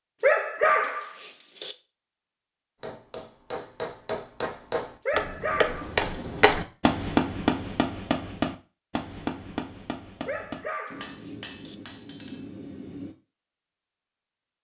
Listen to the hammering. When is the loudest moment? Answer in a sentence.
The volume of the hammering peaks at 7 seconds.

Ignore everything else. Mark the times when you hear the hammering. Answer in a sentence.
The hammering can be heard from 2.8 to 13.2 s.